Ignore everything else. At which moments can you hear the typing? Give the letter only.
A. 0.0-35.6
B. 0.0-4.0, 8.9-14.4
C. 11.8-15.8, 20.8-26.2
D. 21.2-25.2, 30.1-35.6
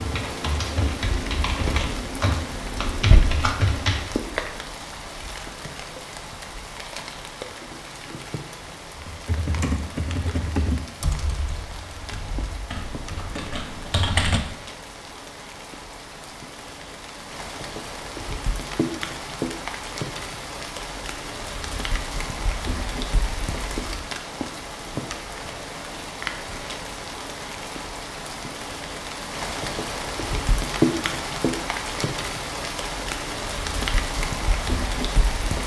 B.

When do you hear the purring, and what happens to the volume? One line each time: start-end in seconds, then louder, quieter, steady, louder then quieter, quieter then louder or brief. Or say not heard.
not heard.